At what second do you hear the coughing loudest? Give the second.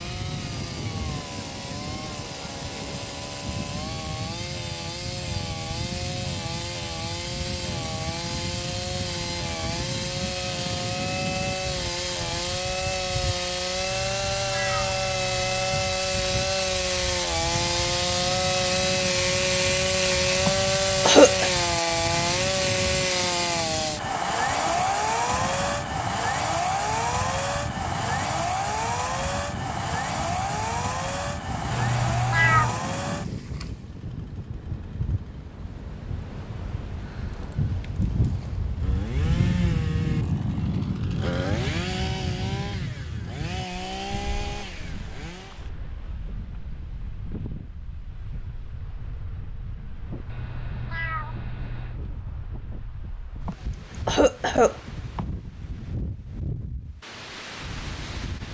21 s.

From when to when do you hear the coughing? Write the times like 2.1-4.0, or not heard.
20.4-21.5, 53.5-55.2.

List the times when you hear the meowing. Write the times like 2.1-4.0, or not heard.
13.9-15.8, 31.7-32.8, 50.2-52.0.